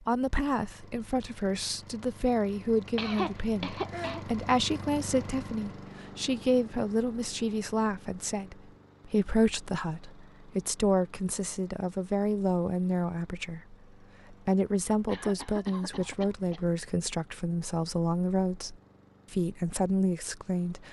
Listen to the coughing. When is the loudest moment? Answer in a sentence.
The volume of the coughing peaks at 3 seconds.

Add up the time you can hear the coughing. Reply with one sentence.
You can hear the coughing for 3 seconds altogether.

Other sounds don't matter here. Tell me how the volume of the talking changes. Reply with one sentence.
The loudness of the talking stays about the same.